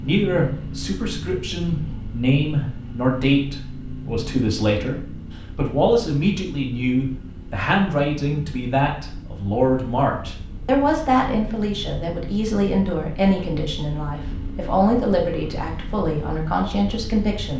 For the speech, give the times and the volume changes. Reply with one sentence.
The speech can be heard from 0.0 to 17.5 s, at a steady volume.